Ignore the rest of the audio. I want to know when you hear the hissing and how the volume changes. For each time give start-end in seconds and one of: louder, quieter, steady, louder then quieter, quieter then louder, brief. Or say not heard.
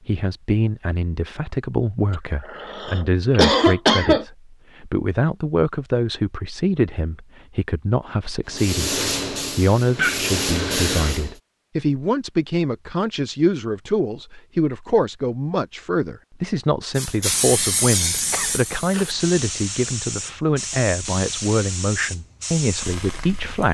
8.4-11.3 brief
16.9-23.6 quieter.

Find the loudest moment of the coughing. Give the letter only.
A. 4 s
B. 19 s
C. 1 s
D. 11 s
A.